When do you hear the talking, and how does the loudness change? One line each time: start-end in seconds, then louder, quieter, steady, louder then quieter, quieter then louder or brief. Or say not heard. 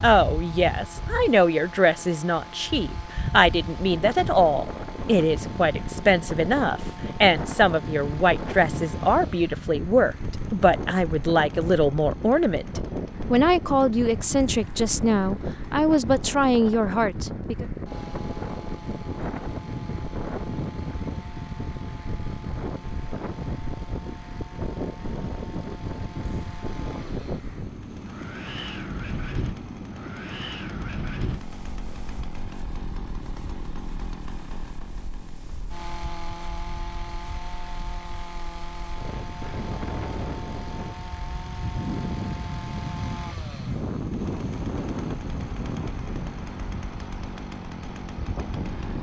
0.0-17.6 steady.